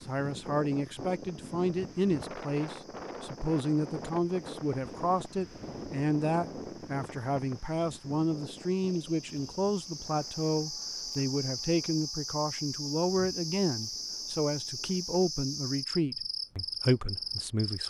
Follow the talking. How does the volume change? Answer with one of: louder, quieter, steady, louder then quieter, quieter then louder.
steady.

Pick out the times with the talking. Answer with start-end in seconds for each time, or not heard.
0.0-17.8.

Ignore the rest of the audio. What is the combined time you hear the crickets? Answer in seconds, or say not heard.
18 s.